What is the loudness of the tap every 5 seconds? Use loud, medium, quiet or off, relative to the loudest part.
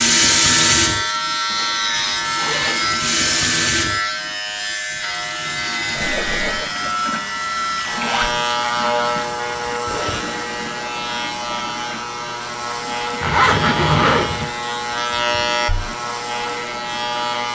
loud, medium, quiet, quiet.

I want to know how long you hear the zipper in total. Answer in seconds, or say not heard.
3 s.